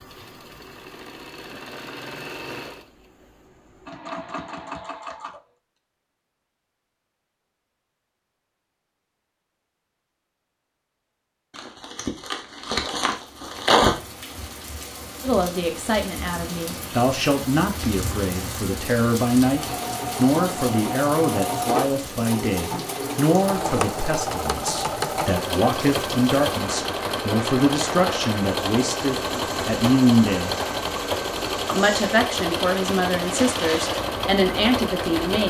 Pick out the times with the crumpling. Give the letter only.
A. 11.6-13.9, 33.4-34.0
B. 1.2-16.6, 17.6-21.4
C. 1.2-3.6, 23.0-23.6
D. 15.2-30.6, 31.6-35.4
A.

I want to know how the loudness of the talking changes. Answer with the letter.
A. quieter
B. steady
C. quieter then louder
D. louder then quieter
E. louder
B.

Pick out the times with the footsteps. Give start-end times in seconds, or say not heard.
not heard.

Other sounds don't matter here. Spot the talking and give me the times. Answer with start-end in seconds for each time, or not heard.
15.2-30.6, 31.6-35.4.